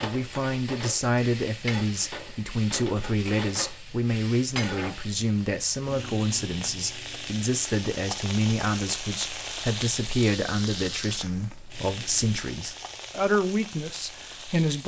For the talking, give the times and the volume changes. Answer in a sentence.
You can hear the talking from 0.0 to 14.8 s, at a steady volume.